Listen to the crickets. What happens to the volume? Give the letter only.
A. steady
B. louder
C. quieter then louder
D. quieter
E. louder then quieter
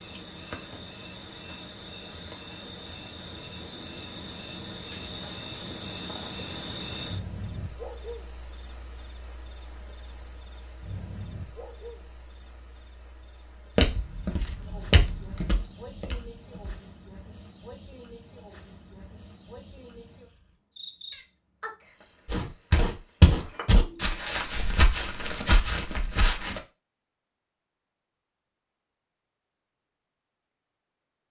E.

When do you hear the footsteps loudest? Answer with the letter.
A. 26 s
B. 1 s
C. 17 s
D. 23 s
D.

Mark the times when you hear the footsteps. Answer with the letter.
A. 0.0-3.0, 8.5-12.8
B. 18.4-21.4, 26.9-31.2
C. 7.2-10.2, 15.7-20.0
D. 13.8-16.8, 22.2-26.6
D.